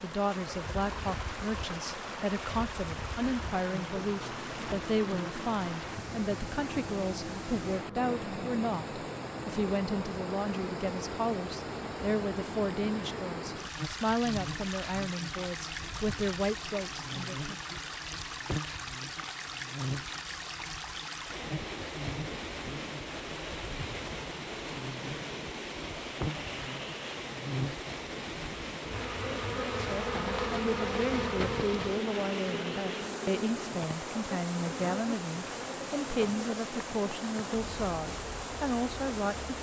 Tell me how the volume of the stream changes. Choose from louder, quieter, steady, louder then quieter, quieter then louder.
steady.